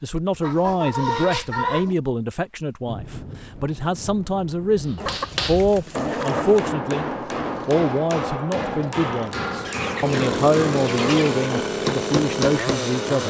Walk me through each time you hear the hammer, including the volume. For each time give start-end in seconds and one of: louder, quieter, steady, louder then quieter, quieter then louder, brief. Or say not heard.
4.8-12.9 steady.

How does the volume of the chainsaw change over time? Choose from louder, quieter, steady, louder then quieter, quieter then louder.
louder.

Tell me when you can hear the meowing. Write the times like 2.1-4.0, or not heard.
not heard.